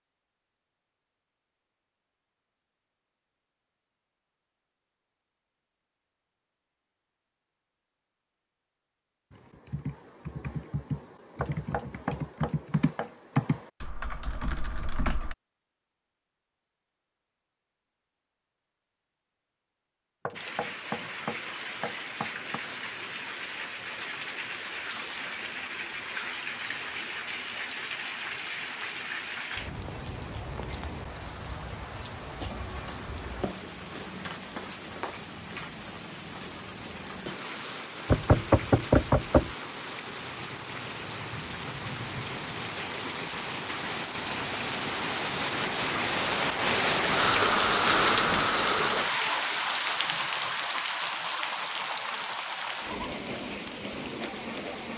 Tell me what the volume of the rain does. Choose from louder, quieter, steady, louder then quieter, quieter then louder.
louder.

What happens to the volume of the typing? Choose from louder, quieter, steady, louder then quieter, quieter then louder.
louder then quieter.